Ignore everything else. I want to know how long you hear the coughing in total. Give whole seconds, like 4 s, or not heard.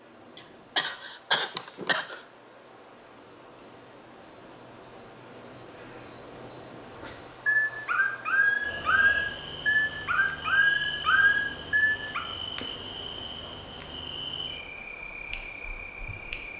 2 s.